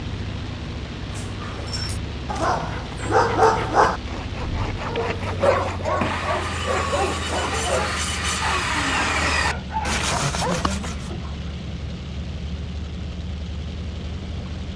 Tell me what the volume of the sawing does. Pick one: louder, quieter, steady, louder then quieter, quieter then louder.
louder.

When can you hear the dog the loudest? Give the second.
3 s.